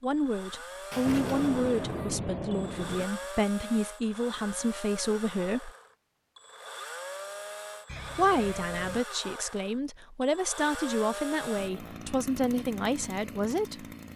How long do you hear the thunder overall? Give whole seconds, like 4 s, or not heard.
2 s.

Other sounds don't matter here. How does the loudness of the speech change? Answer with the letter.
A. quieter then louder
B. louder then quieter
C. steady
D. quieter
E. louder
C.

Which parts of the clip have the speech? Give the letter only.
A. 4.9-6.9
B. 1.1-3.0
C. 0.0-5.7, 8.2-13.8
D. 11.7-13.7
C.